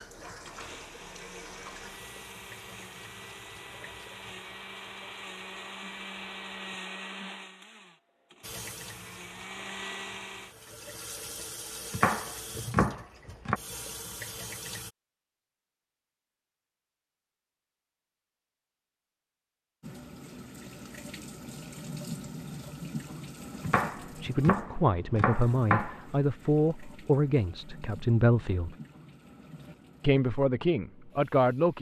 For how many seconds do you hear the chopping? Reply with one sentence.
You can hear the chopping for 4 seconds altogether.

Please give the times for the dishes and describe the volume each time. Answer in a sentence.
The dishes can't be heard in this clip.